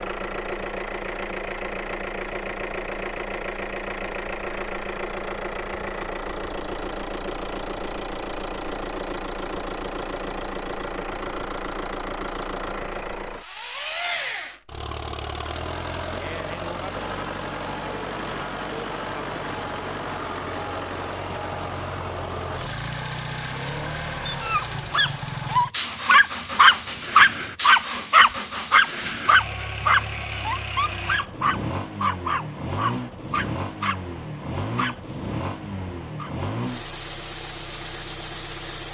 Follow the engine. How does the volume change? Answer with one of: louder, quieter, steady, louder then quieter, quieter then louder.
steady.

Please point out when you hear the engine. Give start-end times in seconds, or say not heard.
0.0-38.8.